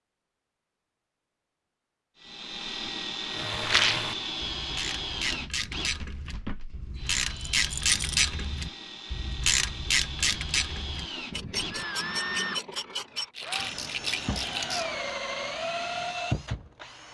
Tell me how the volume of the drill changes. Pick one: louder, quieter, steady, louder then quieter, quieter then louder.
quieter then louder.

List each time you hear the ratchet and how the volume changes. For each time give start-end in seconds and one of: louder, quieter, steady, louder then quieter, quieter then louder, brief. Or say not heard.
3.2-15.2 louder then quieter.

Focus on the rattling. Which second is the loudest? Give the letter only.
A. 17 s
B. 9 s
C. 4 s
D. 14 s
C.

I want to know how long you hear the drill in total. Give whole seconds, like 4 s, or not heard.
15 s.